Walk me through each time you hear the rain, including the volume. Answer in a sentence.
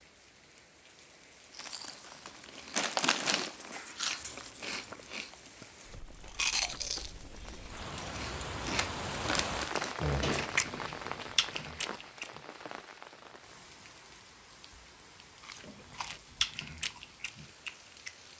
The rain can be heard from 0.0 to 18.3 s, getting louder then quieter.